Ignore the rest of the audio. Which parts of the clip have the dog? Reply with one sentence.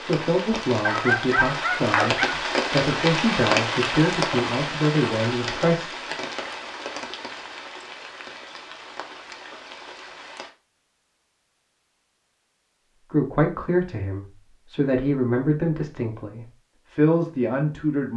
The dog can be heard from 0.8 to 2.3 s.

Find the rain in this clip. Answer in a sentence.
The rain can be heard from 0.0 to 10.6 s.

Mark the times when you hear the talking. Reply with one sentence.
You can hear the talking from 0.0 to 6.0 s and from 13.1 to 18.1 s.